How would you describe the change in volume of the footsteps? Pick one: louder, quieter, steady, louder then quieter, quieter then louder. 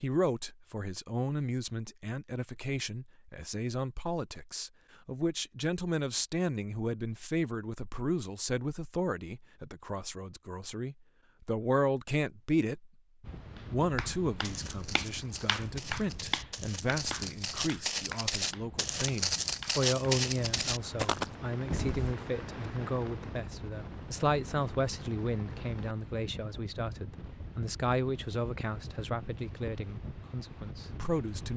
louder.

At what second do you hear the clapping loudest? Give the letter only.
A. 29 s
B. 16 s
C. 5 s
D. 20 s
B.